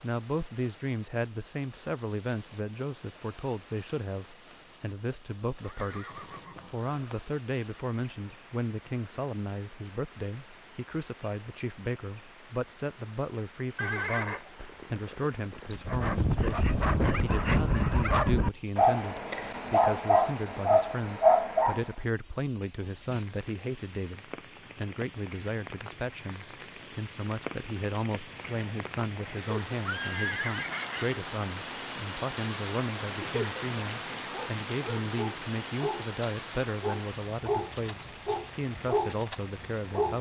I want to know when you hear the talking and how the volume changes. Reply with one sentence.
The talking can be heard from 0.0 to 40.1 s, at a steady volume.